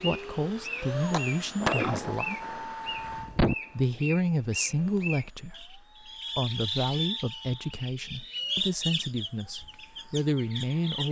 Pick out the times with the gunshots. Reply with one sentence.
The gunshots can be heard from 1.1 to 3.5 s.